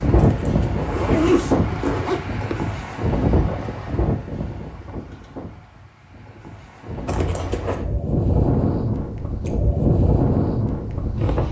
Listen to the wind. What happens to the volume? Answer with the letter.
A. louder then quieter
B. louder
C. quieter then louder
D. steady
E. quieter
C.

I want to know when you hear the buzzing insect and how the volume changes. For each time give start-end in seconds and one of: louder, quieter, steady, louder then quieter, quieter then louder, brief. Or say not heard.
not heard.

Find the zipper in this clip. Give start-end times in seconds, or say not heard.
0.1-2.5, 7.0-7.8.